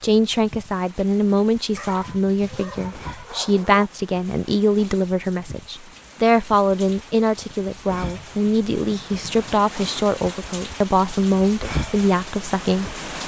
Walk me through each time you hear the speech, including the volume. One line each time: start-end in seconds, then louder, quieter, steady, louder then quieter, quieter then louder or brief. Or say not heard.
0.0-12.9 steady.